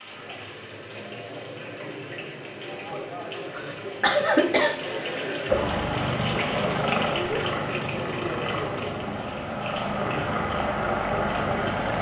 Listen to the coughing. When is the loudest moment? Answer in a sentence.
The volume of the coughing peaks at 4 seconds.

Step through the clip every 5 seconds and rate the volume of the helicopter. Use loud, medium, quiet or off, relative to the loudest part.
off, loud, loud.